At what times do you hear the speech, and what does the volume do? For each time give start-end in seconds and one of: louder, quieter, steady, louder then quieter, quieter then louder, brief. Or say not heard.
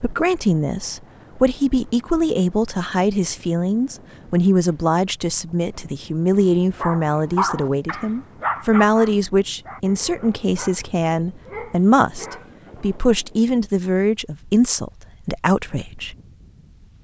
0.0-16.1 steady.